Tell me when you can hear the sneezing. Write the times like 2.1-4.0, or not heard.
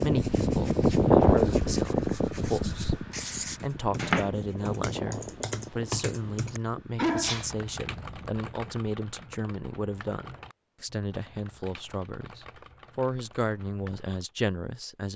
7.0-7.5.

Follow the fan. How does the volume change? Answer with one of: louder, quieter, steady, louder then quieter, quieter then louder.
quieter.